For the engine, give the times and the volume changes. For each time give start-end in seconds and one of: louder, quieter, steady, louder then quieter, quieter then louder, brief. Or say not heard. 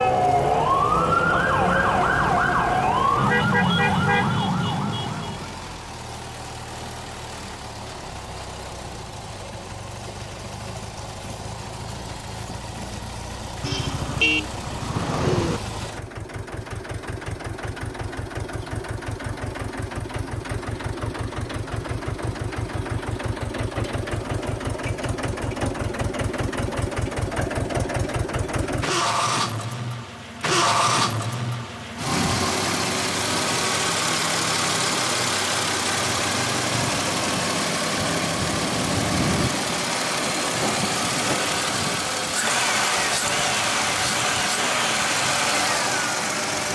0.0-46.7 louder.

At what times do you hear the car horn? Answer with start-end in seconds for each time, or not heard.
13.6-15.6.